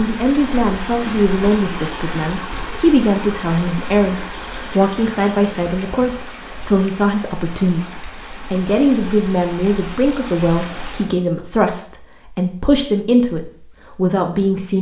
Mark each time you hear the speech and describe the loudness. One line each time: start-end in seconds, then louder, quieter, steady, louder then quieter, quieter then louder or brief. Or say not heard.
0.0-14.7 steady.